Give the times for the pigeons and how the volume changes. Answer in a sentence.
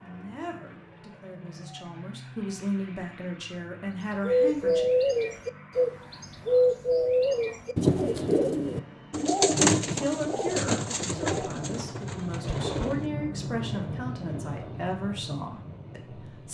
You can hear the pigeons from 4.2 to 13.1 s, getting quieter.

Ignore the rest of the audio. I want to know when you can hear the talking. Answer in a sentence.
You can hear the talking from 0.0 to 4.9 s and from 9.8 to 16.4 s.